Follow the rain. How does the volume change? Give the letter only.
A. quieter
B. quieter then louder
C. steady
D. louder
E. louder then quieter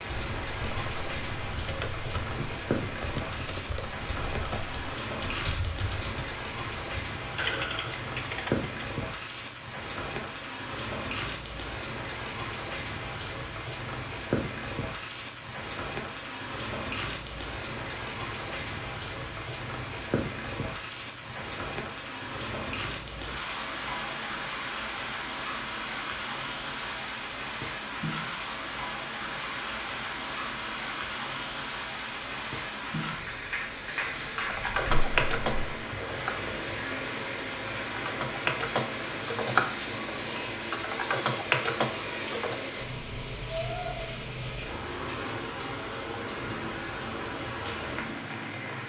C.